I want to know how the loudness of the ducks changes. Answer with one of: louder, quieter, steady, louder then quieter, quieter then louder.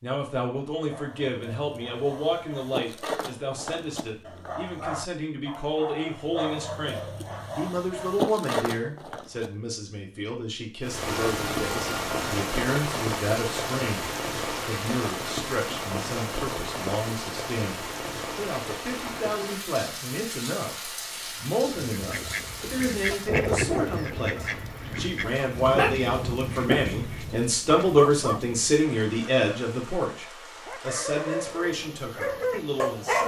louder then quieter.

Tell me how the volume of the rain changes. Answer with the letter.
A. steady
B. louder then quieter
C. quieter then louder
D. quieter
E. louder
D.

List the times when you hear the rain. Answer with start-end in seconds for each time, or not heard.
10.8-33.2.